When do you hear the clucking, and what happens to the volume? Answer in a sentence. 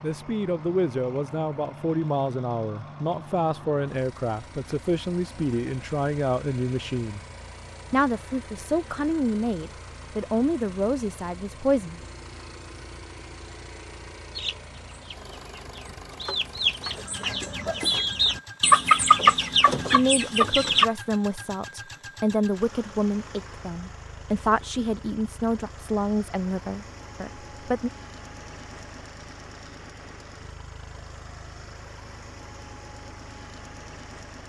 The clucking can be heard from 14.3 to 20.9 s, getting louder then quieter.